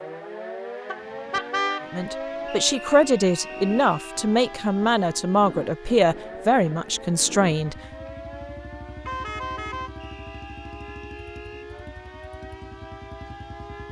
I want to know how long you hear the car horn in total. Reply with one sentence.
You can hear the car horn for 2 seconds altogether.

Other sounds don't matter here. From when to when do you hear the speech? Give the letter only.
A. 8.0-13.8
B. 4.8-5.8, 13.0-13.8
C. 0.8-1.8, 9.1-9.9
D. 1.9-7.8
D.